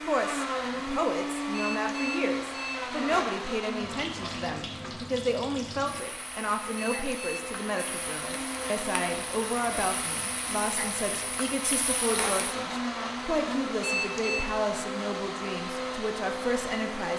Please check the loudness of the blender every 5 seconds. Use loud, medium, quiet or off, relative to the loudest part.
loud, medium, loud, loud.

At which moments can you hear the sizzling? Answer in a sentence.
The sizzling can be heard from 3.8 to 12.6 s.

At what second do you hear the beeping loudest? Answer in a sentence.
The volume of the beeping peaks at 14 seconds.